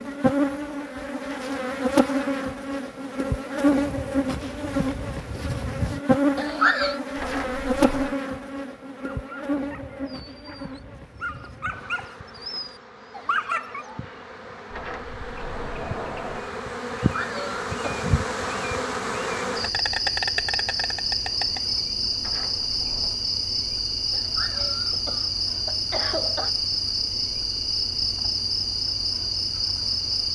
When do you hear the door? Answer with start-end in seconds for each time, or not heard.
7.2-8.2, 14.7-16.5, 22.1-23.2.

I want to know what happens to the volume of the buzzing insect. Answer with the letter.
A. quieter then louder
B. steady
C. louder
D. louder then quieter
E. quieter
A.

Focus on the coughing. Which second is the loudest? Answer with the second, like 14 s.
7 s.